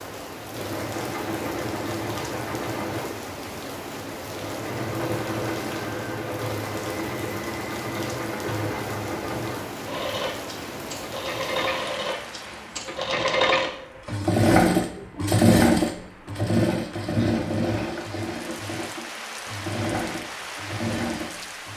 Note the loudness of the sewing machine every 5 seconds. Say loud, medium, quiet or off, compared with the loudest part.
medium, medium, loud, loud, medium.